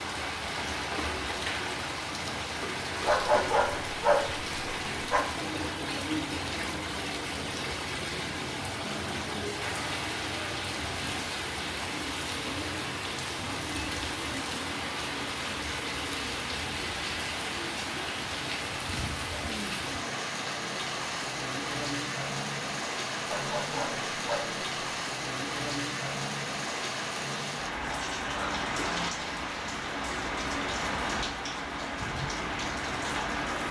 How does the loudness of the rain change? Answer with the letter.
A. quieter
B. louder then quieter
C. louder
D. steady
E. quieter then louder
D.